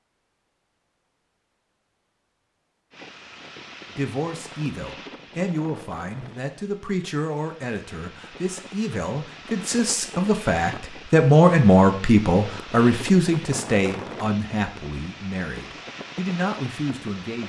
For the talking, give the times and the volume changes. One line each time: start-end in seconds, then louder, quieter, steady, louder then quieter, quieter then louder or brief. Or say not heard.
3.9-17.4 louder then quieter.